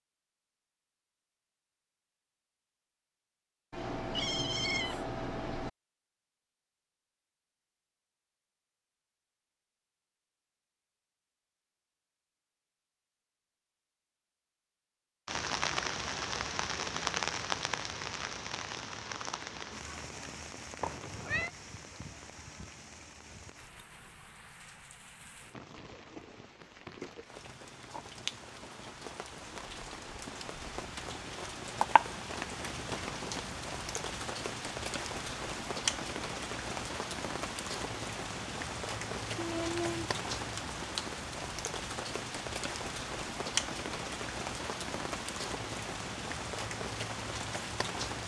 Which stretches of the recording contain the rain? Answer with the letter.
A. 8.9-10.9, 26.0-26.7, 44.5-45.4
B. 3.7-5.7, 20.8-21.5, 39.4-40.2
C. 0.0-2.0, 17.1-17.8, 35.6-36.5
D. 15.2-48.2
D.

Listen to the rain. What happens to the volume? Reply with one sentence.
The volume of the rain goes down, then up.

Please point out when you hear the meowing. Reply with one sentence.
You can hear the meowing from 3.7 to 5.7 s, from 20.8 to 21.5 s and from 39.4 to 40.2 s.